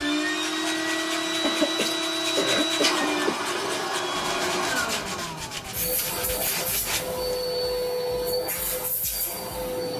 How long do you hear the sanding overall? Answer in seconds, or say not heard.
7 s.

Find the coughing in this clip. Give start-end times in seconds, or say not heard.
1.4-3.5.